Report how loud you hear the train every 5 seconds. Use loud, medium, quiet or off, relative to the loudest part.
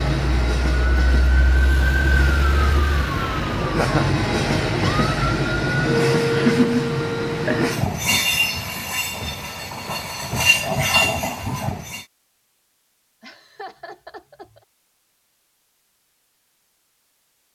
loud, loud, loud, off.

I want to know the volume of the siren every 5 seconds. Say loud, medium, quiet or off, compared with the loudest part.
loud, loud, off, off.